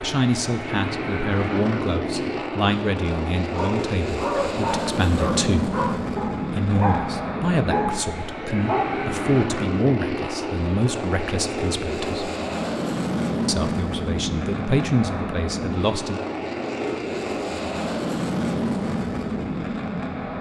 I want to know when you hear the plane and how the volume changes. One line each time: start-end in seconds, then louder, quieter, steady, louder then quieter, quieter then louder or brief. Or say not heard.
0.0-20.3 steady.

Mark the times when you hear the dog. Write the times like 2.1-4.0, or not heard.
3.5-9.1.